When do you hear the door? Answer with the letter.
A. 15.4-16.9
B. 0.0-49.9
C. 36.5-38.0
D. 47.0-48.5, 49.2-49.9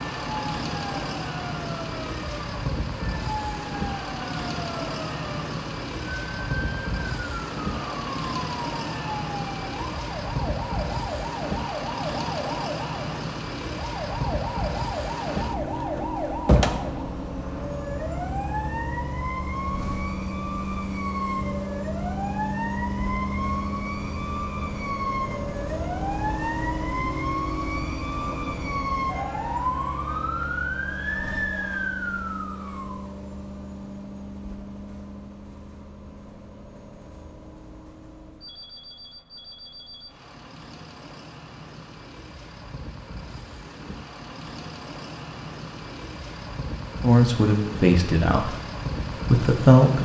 A.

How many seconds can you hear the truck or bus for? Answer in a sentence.
You can hear the truck or bus for 50 seconds altogether.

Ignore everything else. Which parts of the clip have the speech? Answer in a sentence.
You can hear the speech from 47.0 to 48.5 s and from 49.2 to 49.9 s.